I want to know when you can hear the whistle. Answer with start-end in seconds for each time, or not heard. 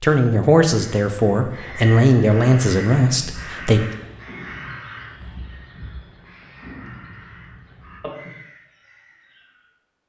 not heard.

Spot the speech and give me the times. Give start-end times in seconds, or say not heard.
0.0-3.8.